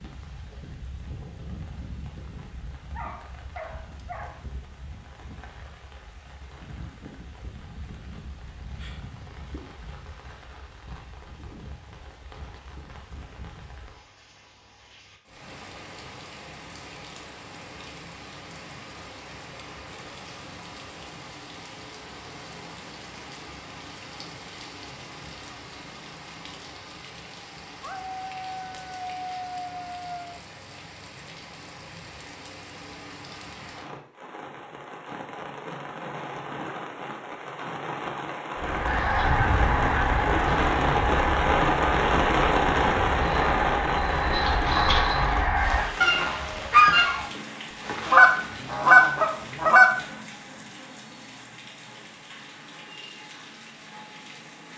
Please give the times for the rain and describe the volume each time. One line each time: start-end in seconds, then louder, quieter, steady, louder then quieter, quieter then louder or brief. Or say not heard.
0.0-54.7 louder then quieter.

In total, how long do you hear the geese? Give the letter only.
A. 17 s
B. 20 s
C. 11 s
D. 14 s
C.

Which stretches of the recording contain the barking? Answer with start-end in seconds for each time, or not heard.
2.9-4.5, 27.8-30.4.